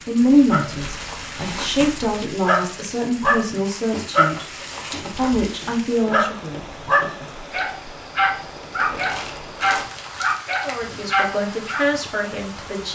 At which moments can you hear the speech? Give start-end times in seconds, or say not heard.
0.1-6.6, 10.7-12.9.